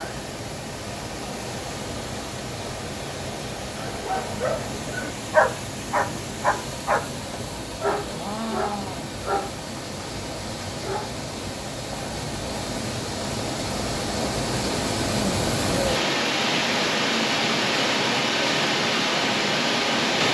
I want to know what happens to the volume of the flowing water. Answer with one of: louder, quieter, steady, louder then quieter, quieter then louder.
louder.